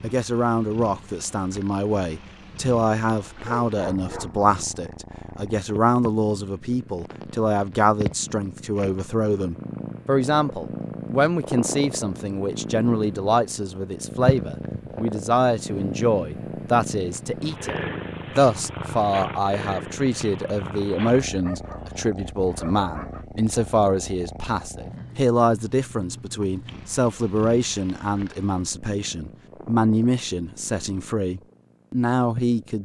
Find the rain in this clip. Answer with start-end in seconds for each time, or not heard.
not heard.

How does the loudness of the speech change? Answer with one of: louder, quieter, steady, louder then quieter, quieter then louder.
steady.